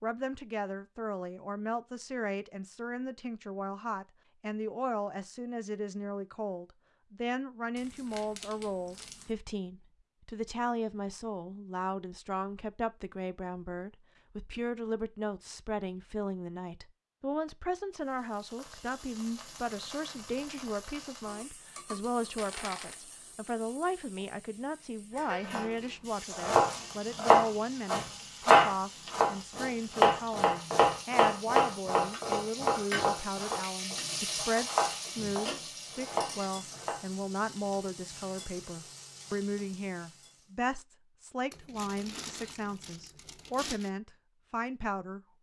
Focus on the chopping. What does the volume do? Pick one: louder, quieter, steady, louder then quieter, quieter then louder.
quieter.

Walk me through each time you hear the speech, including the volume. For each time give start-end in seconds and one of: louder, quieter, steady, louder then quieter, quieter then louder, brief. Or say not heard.
0.0-45.2 steady.